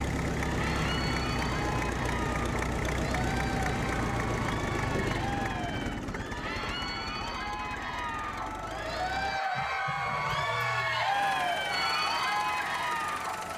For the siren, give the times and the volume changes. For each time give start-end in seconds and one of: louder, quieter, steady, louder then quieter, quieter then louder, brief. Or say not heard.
not heard.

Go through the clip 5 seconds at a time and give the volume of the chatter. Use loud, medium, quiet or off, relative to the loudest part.
medium, medium, loud.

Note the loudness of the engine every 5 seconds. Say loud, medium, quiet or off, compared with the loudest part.
loud, medium, medium.